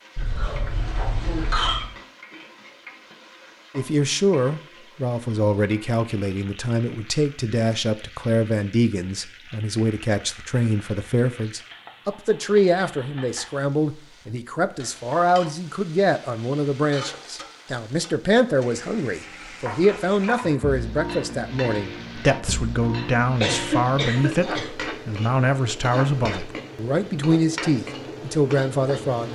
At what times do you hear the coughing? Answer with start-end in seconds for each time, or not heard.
0.1-1.9, 23.4-24.9.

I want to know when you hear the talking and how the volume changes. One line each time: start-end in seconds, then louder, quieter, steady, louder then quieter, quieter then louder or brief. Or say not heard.
3.8-29.3 steady.